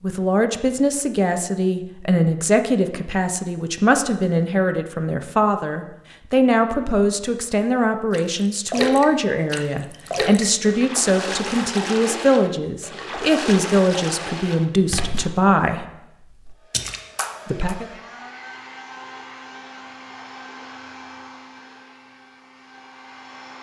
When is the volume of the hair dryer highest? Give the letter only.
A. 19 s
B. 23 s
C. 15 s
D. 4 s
A.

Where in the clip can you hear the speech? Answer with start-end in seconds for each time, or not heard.
0.0-15.8, 17.4-17.9.